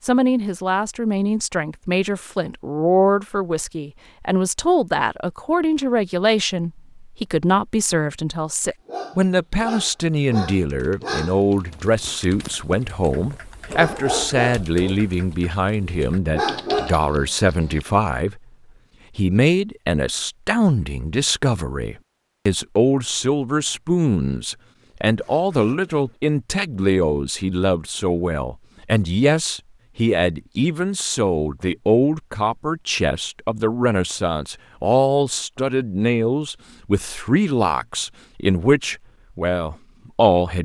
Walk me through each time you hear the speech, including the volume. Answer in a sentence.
You can hear the speech from 0.0 to 18.4 s, at a steady volume; and from 19.1 to 40.5 s, at a steady volume.